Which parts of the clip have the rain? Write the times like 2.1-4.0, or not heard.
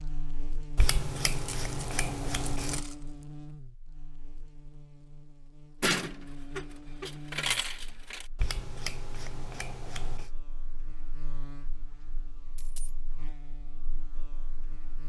not heard.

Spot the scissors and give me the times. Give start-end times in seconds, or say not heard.
0.8-2.9, 8.3-10.3.